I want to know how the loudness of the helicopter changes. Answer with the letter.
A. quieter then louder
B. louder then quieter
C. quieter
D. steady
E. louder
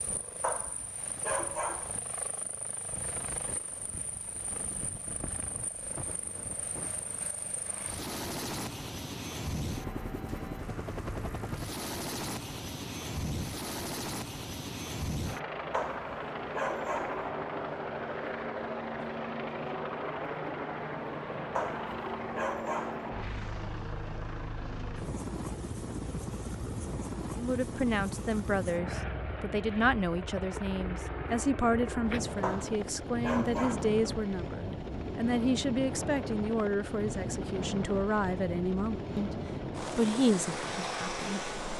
E.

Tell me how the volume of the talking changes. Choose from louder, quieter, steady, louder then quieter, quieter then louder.
steady.